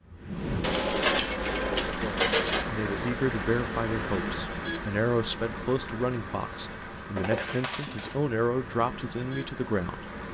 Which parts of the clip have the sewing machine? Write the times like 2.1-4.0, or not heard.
not heard.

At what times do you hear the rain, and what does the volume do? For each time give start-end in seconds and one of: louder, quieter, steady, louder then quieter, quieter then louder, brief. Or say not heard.
0.0-10.2 quieter.